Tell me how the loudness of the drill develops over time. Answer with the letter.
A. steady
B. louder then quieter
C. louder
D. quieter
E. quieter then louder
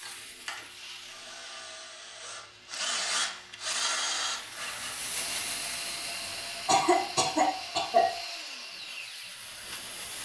B.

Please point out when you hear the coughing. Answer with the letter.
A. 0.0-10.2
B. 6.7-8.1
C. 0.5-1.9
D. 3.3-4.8
B.